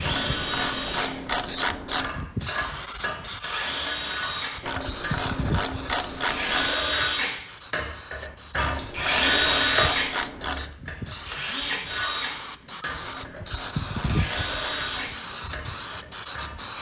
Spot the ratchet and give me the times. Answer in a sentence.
You can hear the ratchet from 0.1 to 2.1 s, from 4.7 to 6.8 s, from 8.6 to 10.6 s and from 13.1 to 15.2 s.